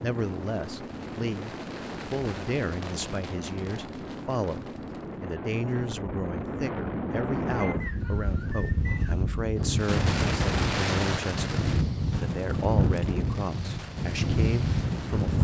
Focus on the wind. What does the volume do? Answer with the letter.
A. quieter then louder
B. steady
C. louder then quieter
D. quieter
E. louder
E.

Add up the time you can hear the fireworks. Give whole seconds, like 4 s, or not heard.
11 s.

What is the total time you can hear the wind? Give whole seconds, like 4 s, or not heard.
15 s.